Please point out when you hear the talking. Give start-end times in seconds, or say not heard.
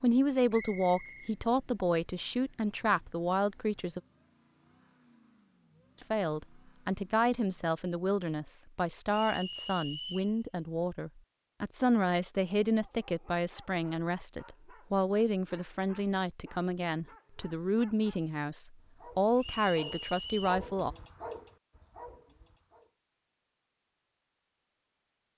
0.0-4.0, 6.0-20.9.